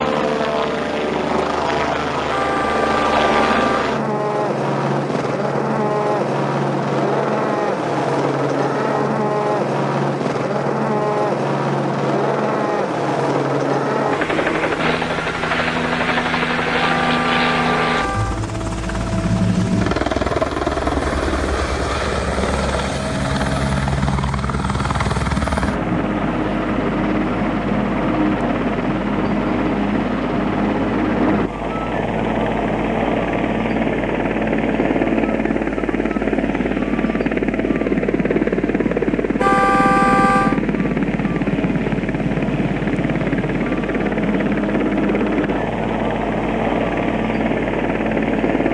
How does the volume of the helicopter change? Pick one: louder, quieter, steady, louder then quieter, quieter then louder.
steady.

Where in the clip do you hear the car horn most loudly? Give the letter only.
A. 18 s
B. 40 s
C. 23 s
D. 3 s
B.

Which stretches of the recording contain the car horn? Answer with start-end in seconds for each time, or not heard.
2.2-3.8, 16.8-18.4, 39.4-40.6.